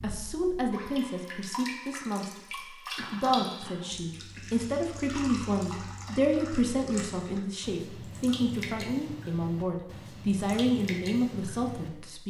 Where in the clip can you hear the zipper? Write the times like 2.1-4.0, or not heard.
not heard.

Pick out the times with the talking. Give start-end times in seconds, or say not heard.
0.0-12.2.